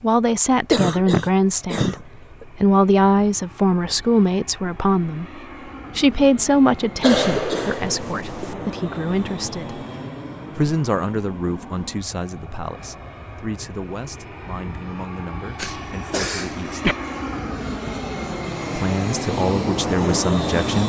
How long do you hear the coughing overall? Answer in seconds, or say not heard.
5 s.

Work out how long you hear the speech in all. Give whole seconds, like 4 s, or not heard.
18 s.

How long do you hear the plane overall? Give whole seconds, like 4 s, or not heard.
21 s.